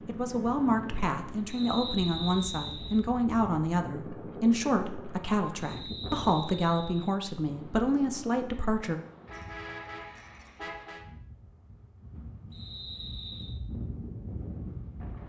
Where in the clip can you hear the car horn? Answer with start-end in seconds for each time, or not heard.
9.2-11.1.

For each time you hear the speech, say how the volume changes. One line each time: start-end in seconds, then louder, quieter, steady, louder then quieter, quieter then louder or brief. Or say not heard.
0.1-9.0 steady.